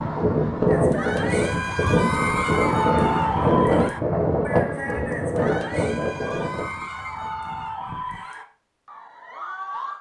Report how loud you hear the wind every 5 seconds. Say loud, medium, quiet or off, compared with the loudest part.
loud, medium.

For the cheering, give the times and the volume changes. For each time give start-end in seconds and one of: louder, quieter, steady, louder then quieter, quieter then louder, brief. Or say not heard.
0.7-9.9 quieter.